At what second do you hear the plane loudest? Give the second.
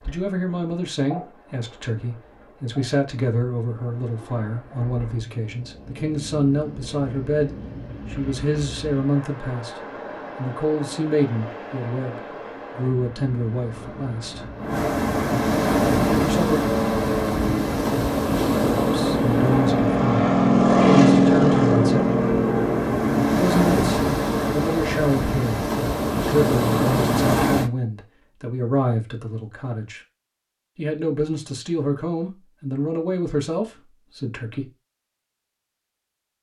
21 s.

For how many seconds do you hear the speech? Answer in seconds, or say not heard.
29 s.